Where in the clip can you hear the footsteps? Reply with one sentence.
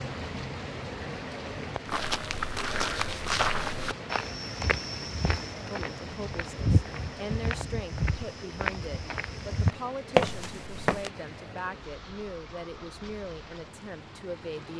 You can hear the footsteps from 1.9 to 11.1 s.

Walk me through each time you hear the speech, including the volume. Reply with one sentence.
The speech can be heard from 5.7 to 14.7 s, at a steady volume.